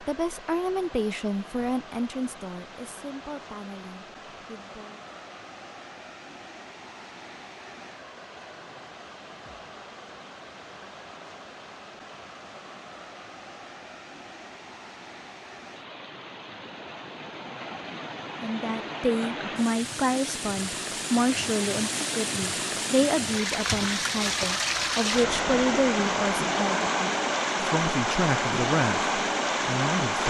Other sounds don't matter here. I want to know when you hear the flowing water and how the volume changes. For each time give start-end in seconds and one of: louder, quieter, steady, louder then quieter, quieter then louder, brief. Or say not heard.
0.0-30.2 louder.